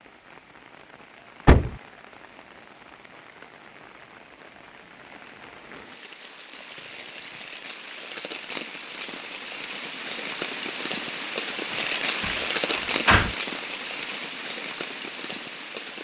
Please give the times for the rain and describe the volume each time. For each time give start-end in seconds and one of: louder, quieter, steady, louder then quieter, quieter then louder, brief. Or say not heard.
0.0-15.9 louder.